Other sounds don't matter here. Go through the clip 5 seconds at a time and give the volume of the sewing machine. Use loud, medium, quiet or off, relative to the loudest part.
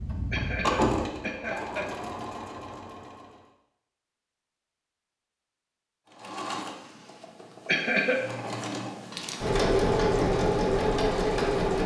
medium, medium, loud.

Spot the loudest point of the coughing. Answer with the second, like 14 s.
8 s.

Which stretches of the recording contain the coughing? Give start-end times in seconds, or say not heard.
0.3-1.9, 7.7-8.2.